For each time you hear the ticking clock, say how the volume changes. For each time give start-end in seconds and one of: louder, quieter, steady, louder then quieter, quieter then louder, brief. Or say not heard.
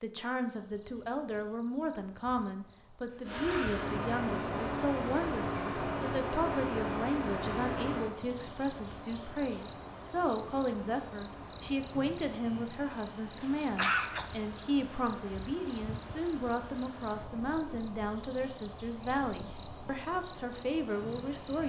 not heard.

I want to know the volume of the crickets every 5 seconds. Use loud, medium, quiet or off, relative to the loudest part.
quiet, loud, loud, loud, loud.